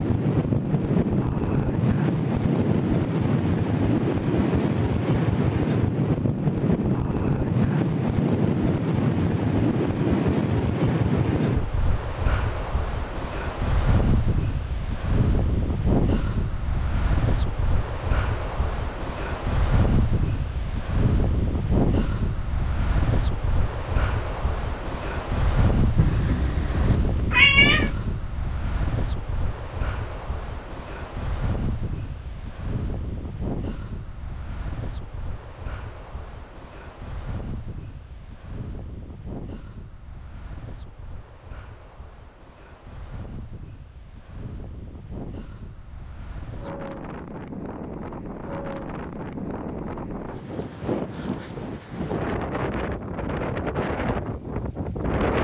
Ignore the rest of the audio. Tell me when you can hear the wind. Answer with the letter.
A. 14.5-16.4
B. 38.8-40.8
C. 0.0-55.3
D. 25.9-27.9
C.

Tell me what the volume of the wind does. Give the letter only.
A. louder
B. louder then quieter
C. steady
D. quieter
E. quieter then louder
E.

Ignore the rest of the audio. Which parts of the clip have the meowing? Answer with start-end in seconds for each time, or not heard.
25.9-27.9.